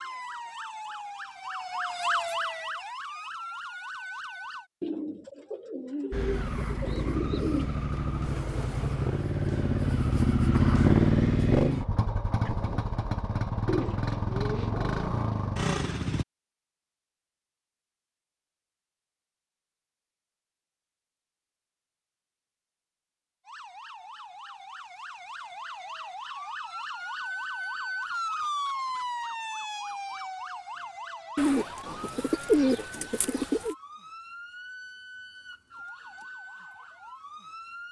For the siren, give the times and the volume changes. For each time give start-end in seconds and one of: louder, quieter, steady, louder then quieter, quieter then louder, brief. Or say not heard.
0.0-4.7 louder then quieter
23.4-37.8 louder then quieter.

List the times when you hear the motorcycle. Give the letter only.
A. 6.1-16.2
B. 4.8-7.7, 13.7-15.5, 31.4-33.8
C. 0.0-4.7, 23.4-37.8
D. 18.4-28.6
A.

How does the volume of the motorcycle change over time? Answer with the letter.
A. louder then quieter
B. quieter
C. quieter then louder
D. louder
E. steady
A.